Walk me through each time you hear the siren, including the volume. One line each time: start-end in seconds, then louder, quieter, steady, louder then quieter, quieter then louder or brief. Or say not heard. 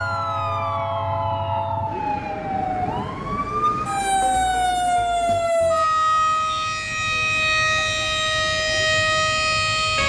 0.0-10.0 louder.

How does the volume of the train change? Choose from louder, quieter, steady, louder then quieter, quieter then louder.
quieter.